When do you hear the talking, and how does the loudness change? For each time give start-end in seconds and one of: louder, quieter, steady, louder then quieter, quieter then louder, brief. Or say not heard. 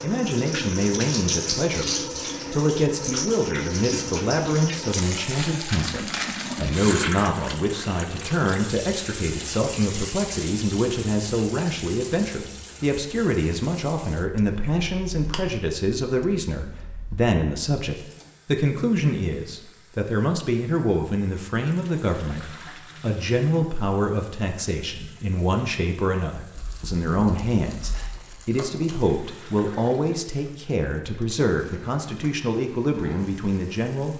0.0-34.1 steady.